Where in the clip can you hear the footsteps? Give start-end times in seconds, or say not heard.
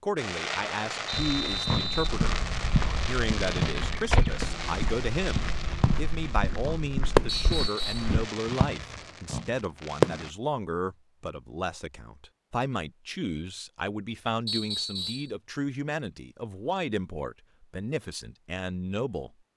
1.1-8.3.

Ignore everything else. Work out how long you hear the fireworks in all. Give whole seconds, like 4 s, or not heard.
10 s.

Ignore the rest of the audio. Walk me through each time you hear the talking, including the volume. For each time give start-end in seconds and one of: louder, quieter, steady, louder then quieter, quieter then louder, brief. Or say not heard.
0.0-19.5 steady.